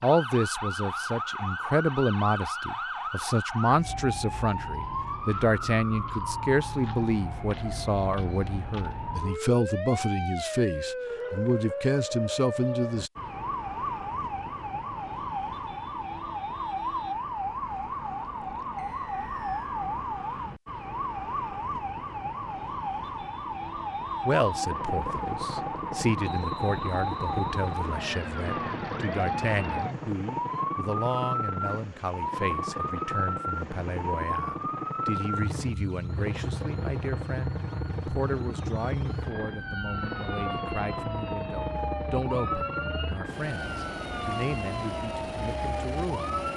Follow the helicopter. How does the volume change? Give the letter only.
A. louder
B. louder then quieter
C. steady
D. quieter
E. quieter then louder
C.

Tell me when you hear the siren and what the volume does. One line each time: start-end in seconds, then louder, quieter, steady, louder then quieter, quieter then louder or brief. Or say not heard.
0.0-46.5 steady.